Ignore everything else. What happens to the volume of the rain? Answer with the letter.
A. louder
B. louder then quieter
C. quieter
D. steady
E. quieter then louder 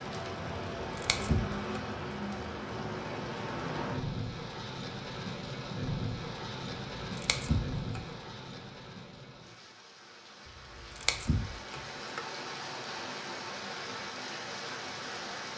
E.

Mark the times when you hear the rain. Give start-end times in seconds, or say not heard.
0.0-15.5.